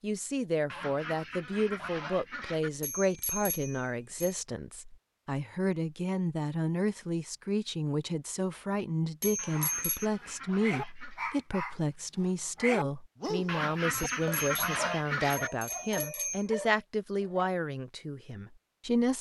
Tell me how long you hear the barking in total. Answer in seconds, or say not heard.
8 s.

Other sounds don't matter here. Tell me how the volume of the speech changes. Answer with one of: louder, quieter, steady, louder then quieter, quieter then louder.
steady.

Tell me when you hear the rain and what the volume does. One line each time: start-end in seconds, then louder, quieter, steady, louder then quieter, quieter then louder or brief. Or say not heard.
not heard.